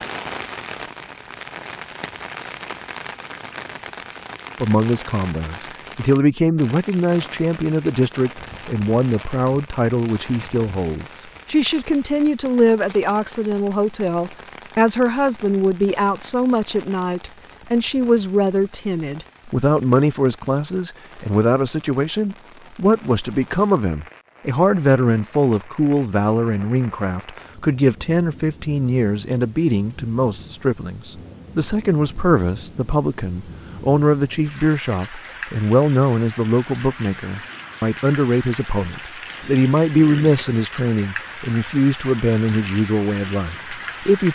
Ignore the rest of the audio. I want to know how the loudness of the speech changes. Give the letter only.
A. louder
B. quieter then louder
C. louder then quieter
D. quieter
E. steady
E.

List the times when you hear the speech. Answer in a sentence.
The speech can be heard from 4.6 to 44.2 s.